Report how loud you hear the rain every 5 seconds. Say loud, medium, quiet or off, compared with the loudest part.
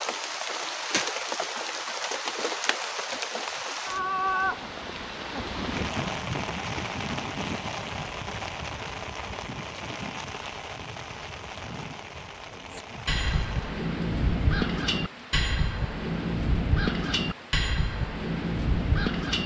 loud, loud, medium, quiet.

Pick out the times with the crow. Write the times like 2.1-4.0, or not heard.
12.7-19.4.